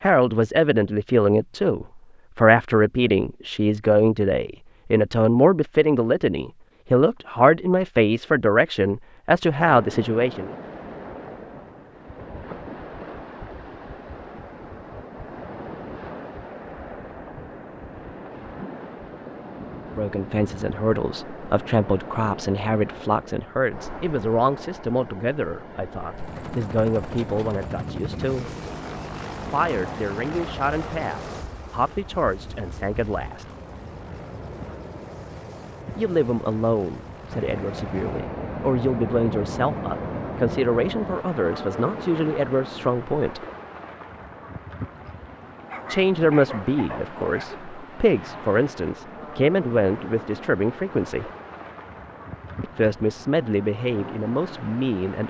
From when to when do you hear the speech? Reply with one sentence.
The speech can be heard from 0.0 to 10.5 s, from 19.9 to 28.5 s, from 29.5 to 33.5 s, from 36.0 to 43.4 s, from 45.9 to 51.3 s and from 52.6 to 55.2 s.